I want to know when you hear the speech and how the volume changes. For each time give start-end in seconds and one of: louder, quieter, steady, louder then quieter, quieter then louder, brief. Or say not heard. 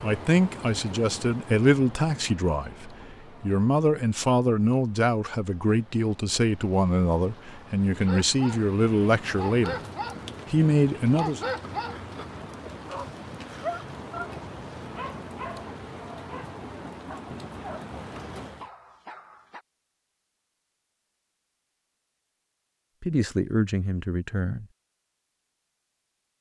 0.0-9.8 steady
10.5-11.4 brief
23.0-24.6 brief.